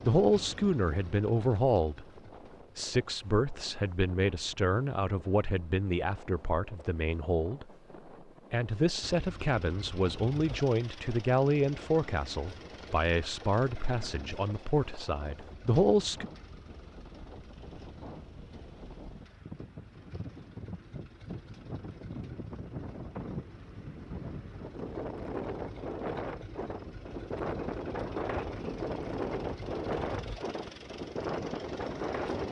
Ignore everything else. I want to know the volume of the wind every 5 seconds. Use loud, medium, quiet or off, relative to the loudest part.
quiet, quiet, quiet, quiet, medium, loud, loud.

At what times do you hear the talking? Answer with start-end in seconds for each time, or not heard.
0.0-2.0, 2.8-7.7, 8.5-16.2.